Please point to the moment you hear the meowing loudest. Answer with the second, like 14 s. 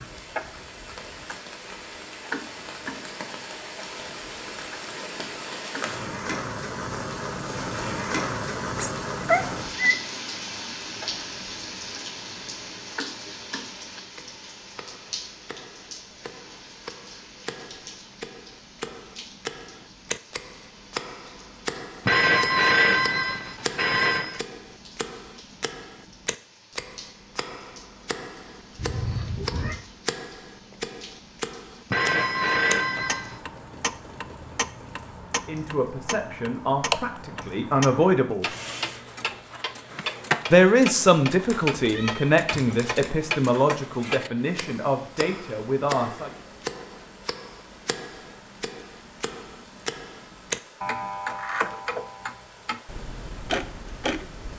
9 s.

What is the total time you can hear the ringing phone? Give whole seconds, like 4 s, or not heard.
4 s.